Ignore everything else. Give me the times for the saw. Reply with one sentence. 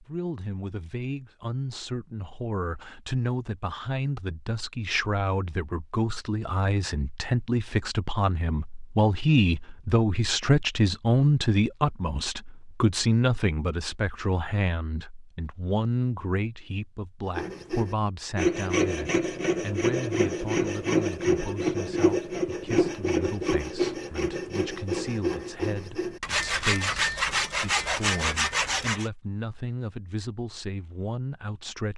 The saw can be heard from 17.4 to 29.1 s.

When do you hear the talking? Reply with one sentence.
The talking can be heard from 0.0 to 31.9 s.